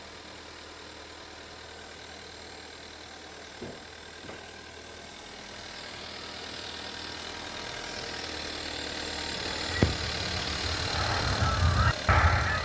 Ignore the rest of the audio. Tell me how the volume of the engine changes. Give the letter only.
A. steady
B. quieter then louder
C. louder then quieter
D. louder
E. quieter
D.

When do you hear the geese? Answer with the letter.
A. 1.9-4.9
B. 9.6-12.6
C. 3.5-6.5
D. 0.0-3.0
B.